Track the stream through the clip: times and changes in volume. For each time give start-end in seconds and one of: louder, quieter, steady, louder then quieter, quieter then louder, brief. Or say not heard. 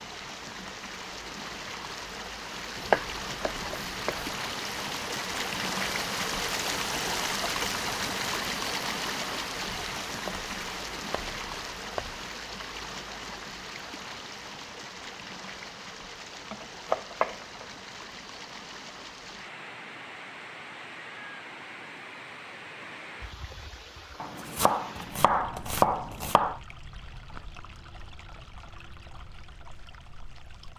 0.0-30.7 quieter.